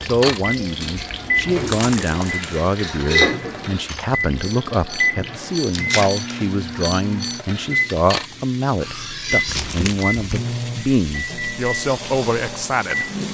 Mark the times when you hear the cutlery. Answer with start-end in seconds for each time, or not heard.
0.0-9.7.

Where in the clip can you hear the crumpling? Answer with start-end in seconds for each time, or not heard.
1.6-2.5, 5.7-6.5, 9.4-10.4.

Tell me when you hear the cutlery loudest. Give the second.
3 s.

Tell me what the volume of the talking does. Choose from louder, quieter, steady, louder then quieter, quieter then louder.
steady.